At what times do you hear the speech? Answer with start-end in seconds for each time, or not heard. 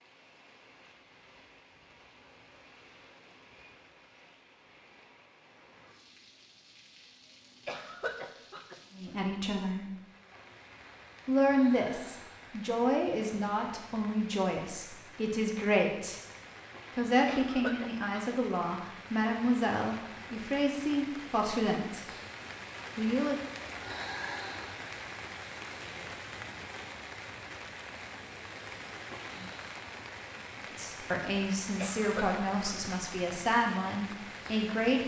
8.9-9.8, 11.2-16.2, 16.9-22.0, 22.9-23.4, 30.8-35.0.